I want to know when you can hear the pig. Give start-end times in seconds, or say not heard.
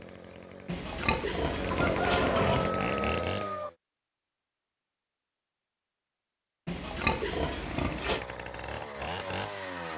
0.7-2.7, 6.7-8.2.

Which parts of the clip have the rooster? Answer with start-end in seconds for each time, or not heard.
1.7-3.7.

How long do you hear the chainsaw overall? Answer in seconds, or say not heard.
6 s.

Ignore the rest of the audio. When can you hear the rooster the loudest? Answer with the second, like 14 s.
2 s.